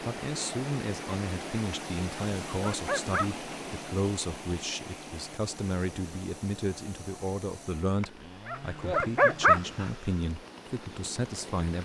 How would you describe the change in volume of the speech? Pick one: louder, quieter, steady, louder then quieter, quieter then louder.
steady.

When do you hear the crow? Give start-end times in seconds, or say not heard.
not heard.